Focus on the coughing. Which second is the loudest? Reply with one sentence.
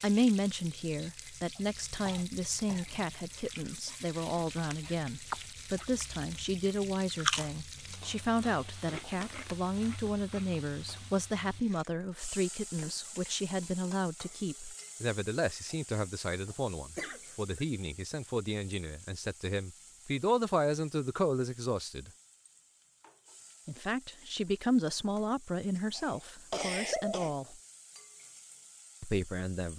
The volume of the coughing peaks at 27 seconds.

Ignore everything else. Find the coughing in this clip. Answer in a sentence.
You can hear the coughing from 1.6 to 2.9 s, from 16.9 to 17.6 s and from 25.9 to 27.4 s.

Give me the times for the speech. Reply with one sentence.
You can hear the speech from 0.0 to 22.1 s, from 23.6 to 27.6 s and from 29.0 to 29.7 s.